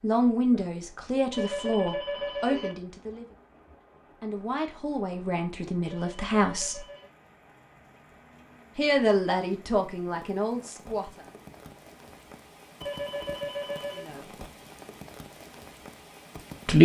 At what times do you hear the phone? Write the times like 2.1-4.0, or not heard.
1.3-2.8, 5.8-7.1, 12.8-14.1.